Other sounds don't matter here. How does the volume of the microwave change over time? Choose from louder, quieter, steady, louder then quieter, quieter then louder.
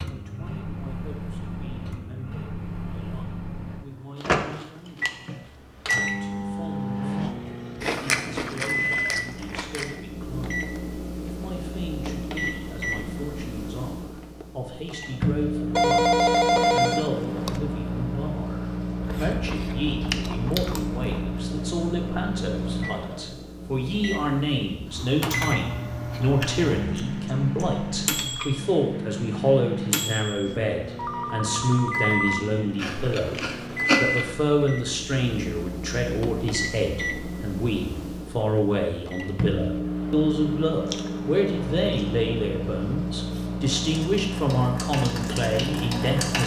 steady.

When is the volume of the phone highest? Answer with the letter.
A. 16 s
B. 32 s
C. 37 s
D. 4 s
A.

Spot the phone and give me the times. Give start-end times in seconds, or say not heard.
15.8-17.6, 30.9-32.5.